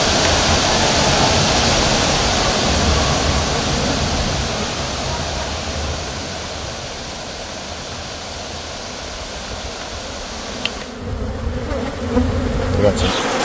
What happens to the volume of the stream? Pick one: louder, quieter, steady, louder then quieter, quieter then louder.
quieter.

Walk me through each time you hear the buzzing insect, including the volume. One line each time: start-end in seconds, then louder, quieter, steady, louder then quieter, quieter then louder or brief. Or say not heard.
0.0-13.3 quieter then louder.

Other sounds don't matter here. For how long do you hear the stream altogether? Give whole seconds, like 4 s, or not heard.
11 s.